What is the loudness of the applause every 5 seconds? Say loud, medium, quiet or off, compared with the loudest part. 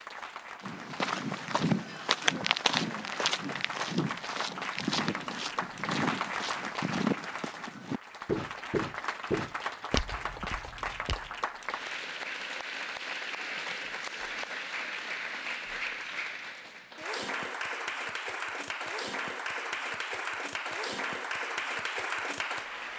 medium, loud, loud, loud, loud.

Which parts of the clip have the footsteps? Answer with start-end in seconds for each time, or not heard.
0.7-11.3.